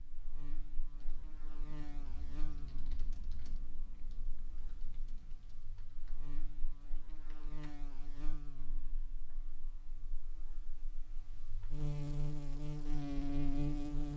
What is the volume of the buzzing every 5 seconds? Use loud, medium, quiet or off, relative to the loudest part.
quiet, quiet, loud.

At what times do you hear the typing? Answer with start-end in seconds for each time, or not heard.
0.8-7.8.